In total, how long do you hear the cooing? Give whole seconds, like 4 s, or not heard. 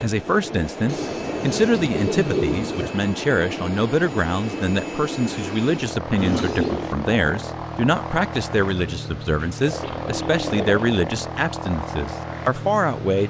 4 s.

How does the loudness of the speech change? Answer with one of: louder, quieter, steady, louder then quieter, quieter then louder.
steady.